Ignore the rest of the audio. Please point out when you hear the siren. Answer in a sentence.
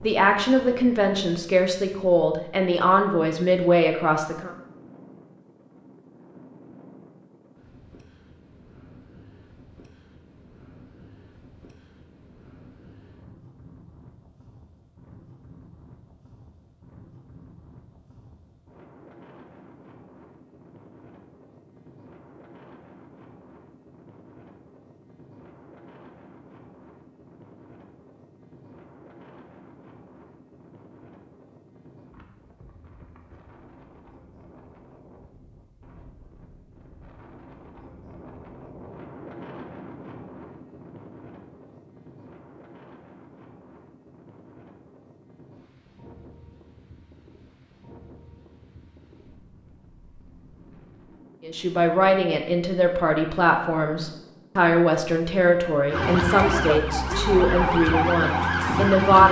The siren can be heard from 55.9 to 59.2 s.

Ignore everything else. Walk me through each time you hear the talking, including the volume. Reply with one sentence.
The talking can be heard from 0.0 to 4.5 s, at a steady volume; and from 51.5 to 59.2 s, at a steady volume.